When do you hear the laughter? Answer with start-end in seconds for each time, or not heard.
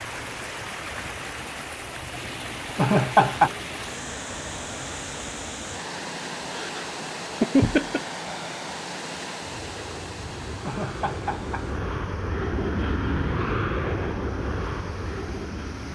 2.8-3.5, 6.5-8.0, 10.7-11.7.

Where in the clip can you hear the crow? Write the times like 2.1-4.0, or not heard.
not heard.